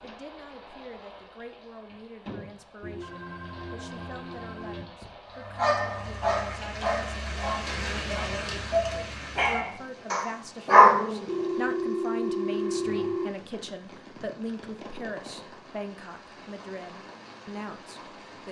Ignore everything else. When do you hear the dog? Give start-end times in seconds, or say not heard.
5.5-11.2.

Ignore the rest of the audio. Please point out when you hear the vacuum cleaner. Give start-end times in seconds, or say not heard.
not heard.